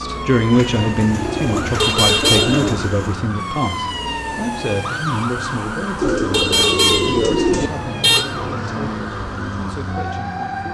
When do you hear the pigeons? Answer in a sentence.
The pigeons can be heard from 0.5 to 3.2 s and from 6.0 to 7.7 s.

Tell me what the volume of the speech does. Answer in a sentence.
The loudness of the speech goes down.